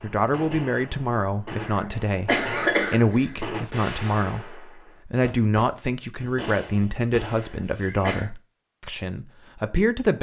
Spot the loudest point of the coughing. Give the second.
3 s.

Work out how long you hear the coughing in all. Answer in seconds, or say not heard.
3 s.